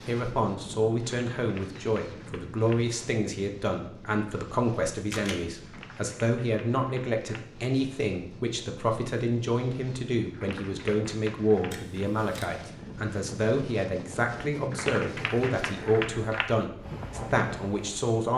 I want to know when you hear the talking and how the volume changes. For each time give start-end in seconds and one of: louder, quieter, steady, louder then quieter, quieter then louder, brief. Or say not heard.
0.1-18.3 steady.